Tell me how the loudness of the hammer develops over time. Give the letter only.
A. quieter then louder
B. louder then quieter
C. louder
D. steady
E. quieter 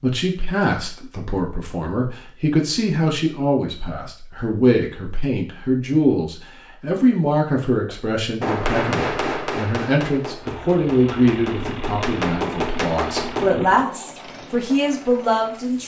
A.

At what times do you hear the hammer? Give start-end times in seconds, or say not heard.
8.4-13.6.